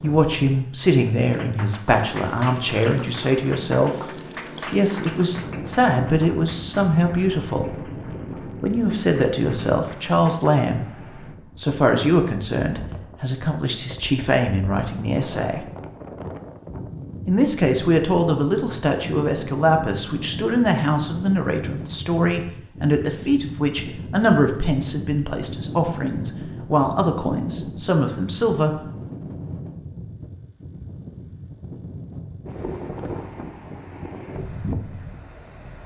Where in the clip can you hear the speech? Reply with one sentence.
The speech can be heard from 0.0 to 4.0 s, from 4.7 to 7.8 s, from 8.6 to 15.7 s and from 17.2 to 28.8 s.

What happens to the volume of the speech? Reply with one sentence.
The volume of the speech stays about the same.